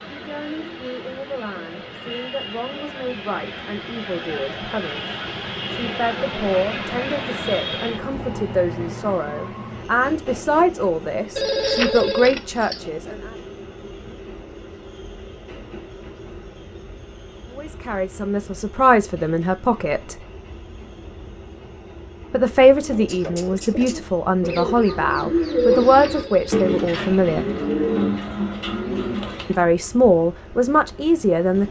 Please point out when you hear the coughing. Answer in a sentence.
The coughing can't be heard in this clip.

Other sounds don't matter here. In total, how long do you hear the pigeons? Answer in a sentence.
The pigeons can be heard for 7 seconds in total.